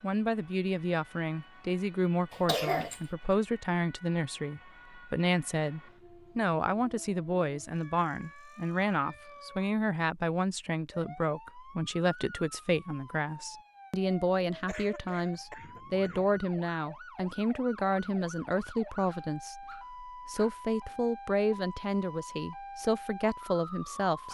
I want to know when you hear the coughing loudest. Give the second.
3 s.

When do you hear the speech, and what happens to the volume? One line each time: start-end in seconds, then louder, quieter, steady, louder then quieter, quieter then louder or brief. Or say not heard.
0.0-24.3 steady.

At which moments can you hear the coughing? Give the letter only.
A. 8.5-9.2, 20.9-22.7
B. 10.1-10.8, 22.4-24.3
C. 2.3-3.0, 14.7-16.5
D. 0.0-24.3
C.